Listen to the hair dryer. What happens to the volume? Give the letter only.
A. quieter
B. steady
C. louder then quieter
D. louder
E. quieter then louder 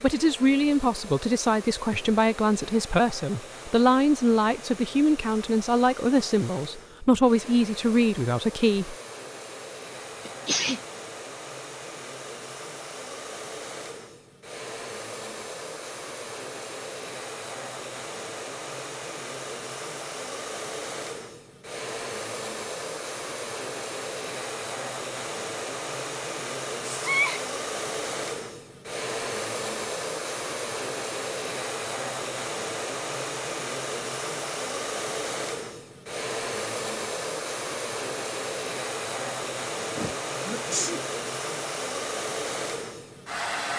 D.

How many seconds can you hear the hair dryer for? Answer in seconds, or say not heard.
44 s.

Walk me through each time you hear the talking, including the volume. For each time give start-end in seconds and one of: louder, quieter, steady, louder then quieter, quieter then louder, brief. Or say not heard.
0.0-8.9 steady.